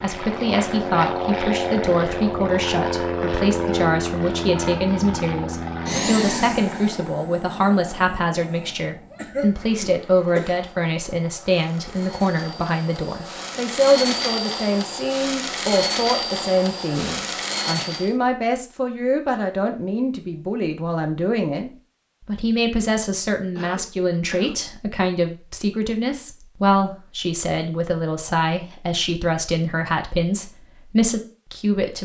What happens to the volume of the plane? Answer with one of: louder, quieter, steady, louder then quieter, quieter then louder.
quieter then louder.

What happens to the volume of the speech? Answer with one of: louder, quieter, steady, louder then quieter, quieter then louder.
steady.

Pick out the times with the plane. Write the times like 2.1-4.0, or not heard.
0.0-18.1.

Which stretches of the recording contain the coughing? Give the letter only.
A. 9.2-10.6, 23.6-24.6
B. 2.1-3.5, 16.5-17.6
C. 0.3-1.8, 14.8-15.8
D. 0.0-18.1
A.